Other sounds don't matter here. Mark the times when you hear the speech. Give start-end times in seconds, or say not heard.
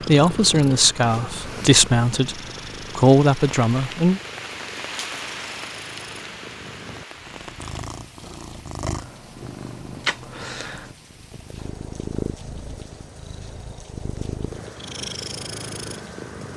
0.1-4.2.